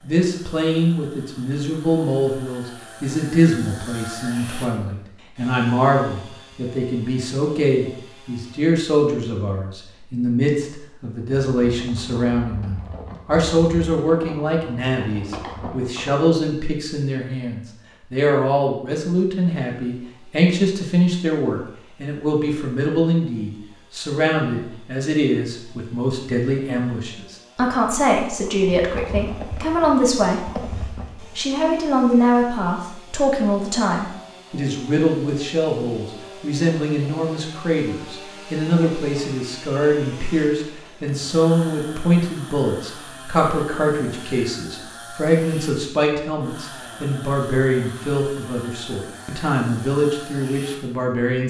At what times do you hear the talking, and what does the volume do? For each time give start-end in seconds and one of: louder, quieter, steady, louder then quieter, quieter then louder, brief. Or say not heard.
0.0-51.4 steady.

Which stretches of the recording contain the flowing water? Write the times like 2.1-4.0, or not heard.
not heard.